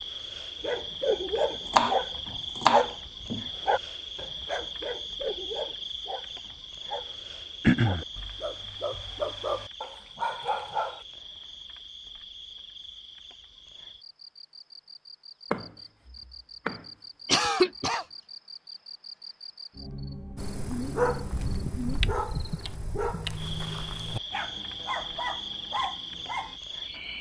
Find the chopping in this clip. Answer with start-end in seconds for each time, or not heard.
1.7-3.5, 15.5-16.9.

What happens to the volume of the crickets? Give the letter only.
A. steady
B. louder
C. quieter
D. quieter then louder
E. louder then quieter
D.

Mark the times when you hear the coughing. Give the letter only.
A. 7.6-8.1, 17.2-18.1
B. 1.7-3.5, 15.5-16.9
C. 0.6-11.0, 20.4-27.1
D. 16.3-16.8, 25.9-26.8
A.